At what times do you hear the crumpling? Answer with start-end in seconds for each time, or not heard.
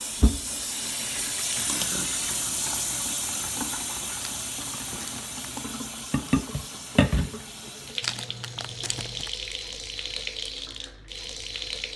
0.8-1.7, 4.2-5.7, 8.0-9.3.